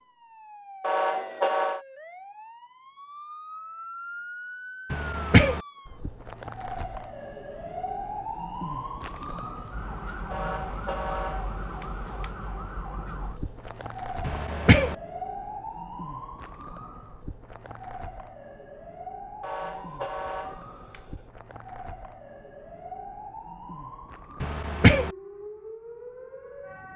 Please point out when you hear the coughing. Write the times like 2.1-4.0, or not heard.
4.9-5.6, 14.2-14.9, 24.4-25.1.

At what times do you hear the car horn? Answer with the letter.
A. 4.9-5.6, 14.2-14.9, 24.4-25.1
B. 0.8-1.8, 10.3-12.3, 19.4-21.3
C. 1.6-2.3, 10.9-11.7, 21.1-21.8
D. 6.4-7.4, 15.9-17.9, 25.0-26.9
B.